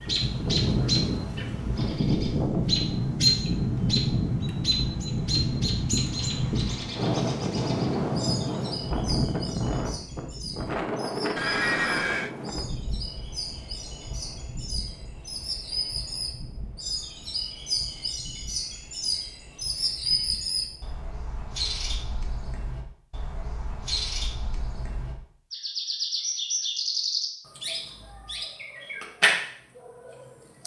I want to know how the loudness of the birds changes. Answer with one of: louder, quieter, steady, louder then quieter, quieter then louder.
quieter then louder.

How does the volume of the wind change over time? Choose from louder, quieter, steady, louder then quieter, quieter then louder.
quieter.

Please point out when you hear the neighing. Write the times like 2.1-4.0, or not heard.
11.3-12.3.